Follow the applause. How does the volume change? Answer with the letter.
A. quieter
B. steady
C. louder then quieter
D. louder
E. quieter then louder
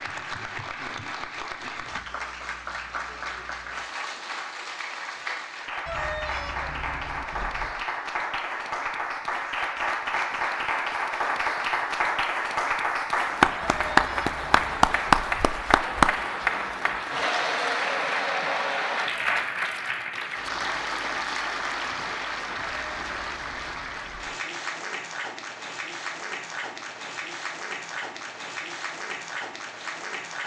C.